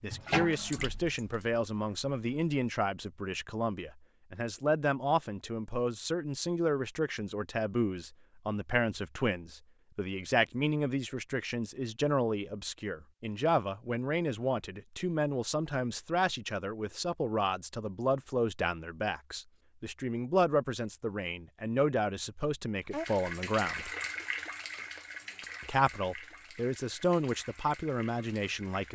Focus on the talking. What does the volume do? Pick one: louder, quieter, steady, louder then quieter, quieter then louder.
steady.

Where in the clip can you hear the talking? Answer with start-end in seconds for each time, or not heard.
0.0-23.9, 25.6-28.9.